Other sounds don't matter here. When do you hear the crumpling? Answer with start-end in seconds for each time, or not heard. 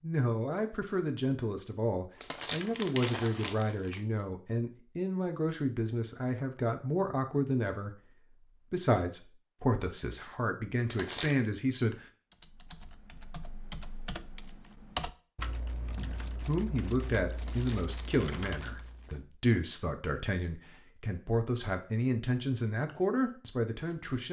2.2-4.0, 10.8-11.5, 17.4-19.1.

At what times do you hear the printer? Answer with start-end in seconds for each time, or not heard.
not heard.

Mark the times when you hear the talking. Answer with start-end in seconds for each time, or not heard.
0.0-12.1, 16.4-24.2.